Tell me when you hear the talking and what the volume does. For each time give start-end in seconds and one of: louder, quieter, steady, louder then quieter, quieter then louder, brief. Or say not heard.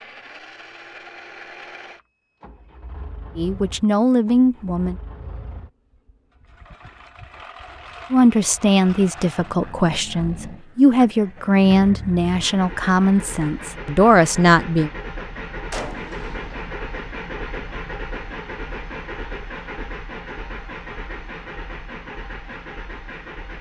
3.4-5.0 brief
8.1-14.9 steady.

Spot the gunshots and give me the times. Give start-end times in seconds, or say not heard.
15.7-16.8.